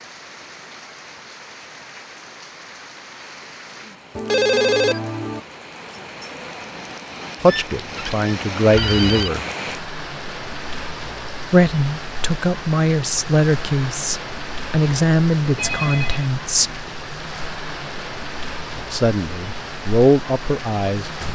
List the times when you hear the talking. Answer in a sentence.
The talking can be heard from 7.4 to 9.4 s, from 11.5 to 16.8 s and from 18.8 to 21.1 s.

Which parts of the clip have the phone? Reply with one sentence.
You can hear the phone from 4.2 to 5.4 s, from 7.5 to 9.3 s and from 15.6 to 16.2 s.